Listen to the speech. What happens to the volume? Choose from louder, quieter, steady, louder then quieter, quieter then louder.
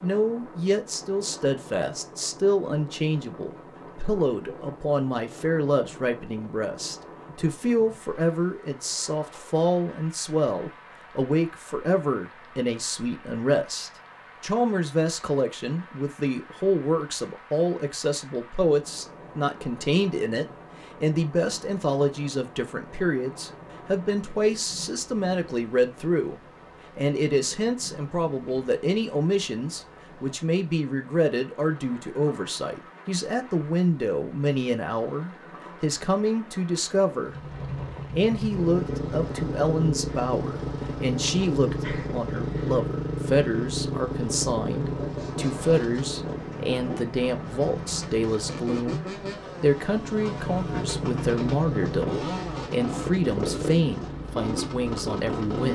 steady.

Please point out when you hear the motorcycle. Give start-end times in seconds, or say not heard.
37.2-55.7.